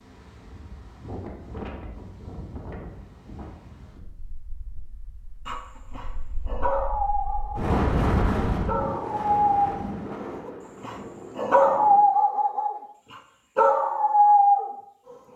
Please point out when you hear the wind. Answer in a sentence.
You can hear the wind from 0.0 to 12.1 s.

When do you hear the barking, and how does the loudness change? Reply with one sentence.
You can hear the barking briefly from 5.5 to 7.8 s; from 8.7 to 12.8 s, getting quieter then louder; and briefly from 13.6 to 14.7 s.